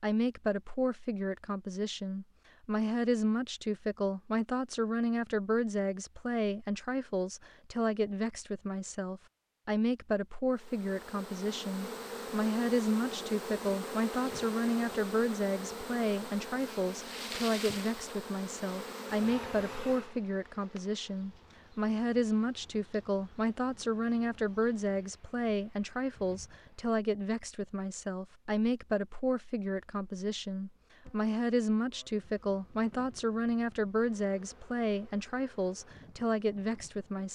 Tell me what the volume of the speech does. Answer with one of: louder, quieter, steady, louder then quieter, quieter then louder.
steady.